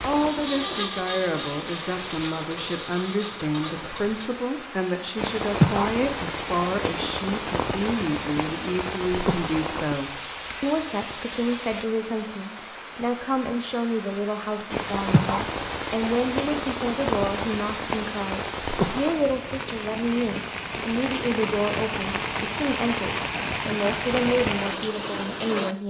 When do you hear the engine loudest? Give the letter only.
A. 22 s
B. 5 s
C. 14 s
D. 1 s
D.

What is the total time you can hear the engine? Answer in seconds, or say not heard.
4 s.